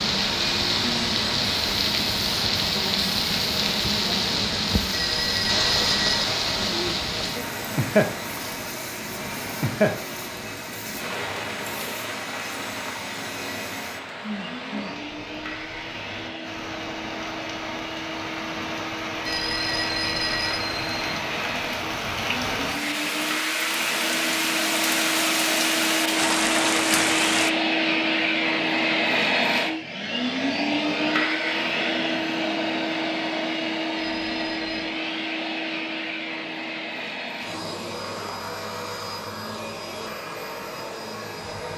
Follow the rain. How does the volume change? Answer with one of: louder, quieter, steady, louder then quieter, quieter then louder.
quieter then louder.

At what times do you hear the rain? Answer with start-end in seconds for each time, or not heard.
0.0-27.5.